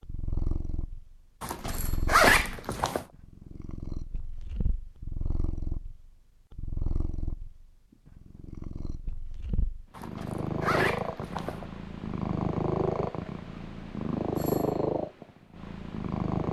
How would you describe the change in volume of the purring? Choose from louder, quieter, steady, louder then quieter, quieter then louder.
louder.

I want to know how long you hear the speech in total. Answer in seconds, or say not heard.
not heard.